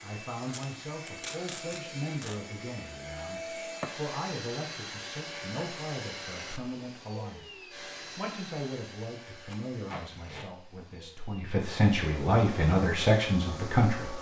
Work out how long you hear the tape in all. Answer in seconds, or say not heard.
3 s.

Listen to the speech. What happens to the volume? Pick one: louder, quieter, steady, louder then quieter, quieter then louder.
louder.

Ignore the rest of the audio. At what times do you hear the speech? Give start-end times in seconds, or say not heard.
0.0-14.1.